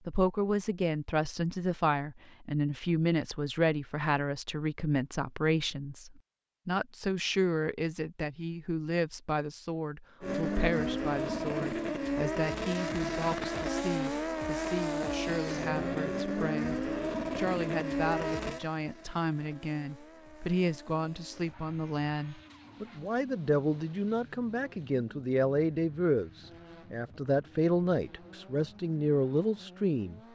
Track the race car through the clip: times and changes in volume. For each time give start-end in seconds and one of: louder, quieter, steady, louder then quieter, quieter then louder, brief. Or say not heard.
10.2-30.3 quieter.